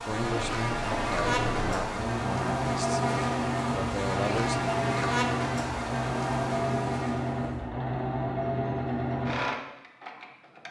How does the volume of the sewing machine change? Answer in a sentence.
The loudness of the sewing machine stays about the same.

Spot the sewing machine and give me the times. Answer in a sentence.
You can hear the sewing machine from 0.1 to 10.6 s.